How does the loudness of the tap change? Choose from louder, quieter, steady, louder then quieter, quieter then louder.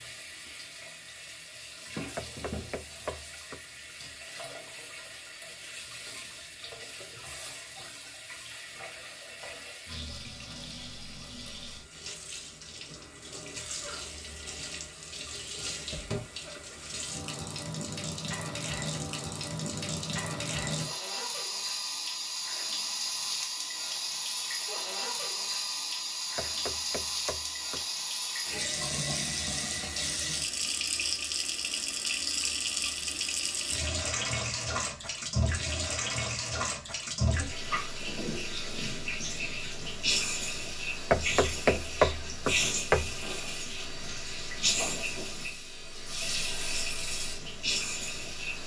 louder.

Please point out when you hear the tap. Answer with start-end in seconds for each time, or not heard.
0.0-48.6.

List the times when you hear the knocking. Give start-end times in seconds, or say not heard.
2.1-3.6, 26.4-27.9, 41.1-43.1.